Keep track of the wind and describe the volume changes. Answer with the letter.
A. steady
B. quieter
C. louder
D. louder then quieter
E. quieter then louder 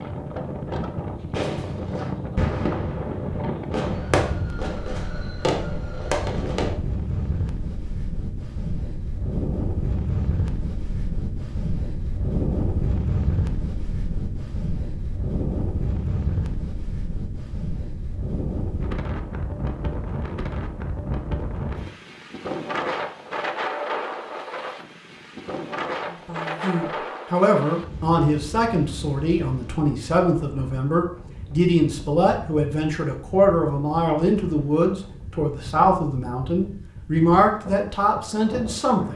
B.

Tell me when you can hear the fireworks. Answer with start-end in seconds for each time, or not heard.
1.3-6.8.